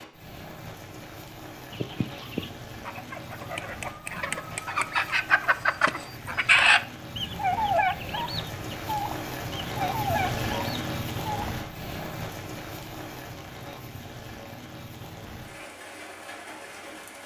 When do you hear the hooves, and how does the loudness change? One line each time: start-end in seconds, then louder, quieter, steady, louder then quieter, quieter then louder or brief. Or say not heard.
not heard.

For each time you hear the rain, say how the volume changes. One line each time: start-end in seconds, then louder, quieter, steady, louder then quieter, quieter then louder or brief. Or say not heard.
0.0-17.2 louder then quieter.